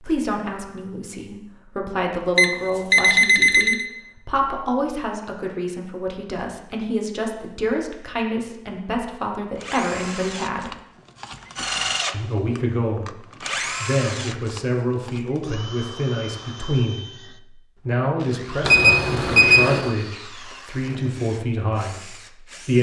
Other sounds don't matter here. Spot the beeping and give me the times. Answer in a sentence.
You can hear the beeping from 2.4 to 3.9 s and from 18.6 to 19.9 s.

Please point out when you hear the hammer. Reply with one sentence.
You can't hear the hammer here.